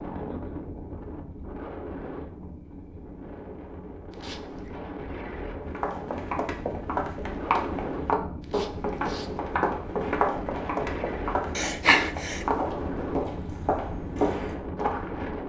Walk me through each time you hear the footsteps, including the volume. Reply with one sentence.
The footsteps can be heard from 5.7 to 15.2 s, at a steady volume.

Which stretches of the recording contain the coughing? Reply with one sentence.
The coughing can be heard from 11.6 to 12.6 s.